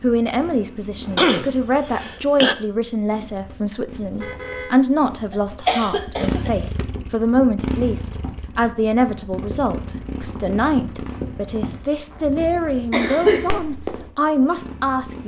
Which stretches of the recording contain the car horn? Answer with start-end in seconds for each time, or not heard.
4.1-4.8.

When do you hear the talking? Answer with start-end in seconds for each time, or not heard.
0.0-15.2.